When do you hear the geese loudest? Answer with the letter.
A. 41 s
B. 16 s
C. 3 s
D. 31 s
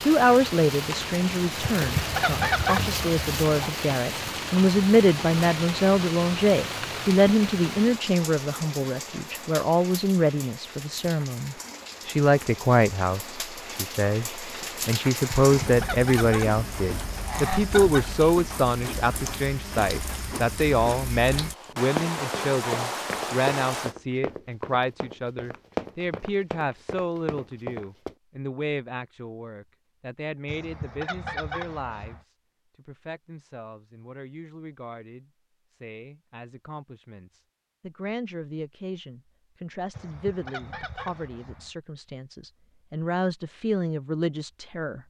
C.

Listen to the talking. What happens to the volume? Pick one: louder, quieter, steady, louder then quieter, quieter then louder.
quieter.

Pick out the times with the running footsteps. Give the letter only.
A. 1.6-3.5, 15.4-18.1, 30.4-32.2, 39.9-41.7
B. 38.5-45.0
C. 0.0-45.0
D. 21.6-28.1
D.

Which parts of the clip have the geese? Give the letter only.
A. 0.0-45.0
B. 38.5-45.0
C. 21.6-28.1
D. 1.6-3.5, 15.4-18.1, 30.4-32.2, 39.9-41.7
D.